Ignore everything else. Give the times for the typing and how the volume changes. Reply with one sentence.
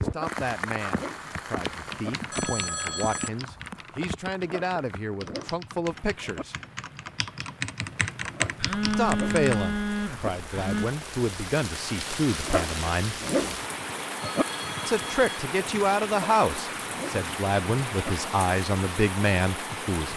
You can hear the typing from 1.2 to 9.6 s, getting quieter then louder.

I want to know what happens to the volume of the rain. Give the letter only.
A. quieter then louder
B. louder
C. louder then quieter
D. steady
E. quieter
A.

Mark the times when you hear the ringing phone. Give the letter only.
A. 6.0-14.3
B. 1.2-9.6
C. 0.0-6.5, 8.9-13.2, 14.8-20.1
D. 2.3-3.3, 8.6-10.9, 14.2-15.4
D.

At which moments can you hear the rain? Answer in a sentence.
The rain can be heard from 0.0 to 20.1 s.